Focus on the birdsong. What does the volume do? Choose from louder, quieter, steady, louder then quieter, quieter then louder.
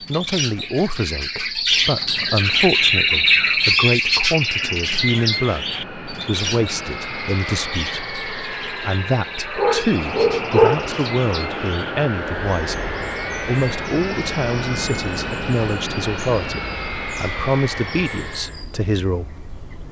quieter.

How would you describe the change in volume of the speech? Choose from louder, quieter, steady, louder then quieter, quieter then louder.
steady.